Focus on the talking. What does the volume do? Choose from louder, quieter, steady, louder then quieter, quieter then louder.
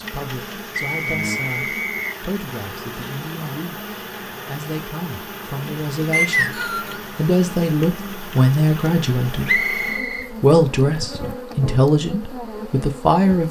louder.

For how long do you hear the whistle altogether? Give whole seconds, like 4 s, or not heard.
3 s.